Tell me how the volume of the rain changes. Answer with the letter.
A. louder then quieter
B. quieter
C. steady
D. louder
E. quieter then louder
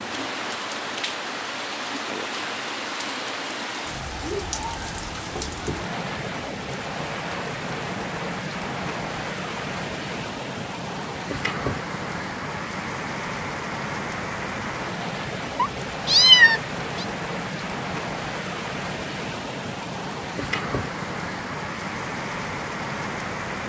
C.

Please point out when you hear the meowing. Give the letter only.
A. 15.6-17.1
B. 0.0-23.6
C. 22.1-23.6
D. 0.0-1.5
A.